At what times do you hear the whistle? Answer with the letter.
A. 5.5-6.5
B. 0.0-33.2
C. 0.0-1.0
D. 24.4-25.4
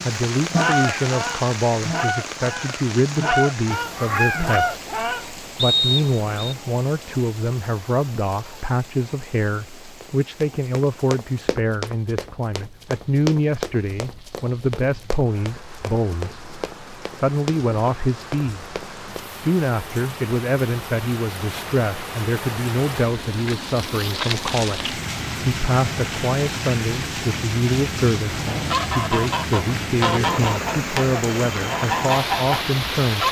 A.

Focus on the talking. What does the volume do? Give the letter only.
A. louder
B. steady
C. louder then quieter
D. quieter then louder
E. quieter
B.